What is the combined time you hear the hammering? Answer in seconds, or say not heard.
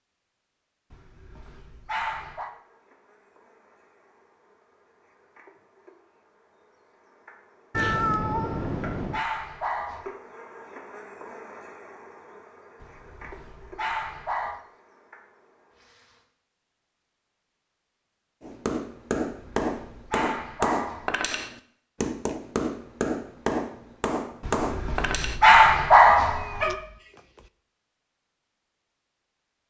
7 s.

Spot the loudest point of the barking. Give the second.
26 s.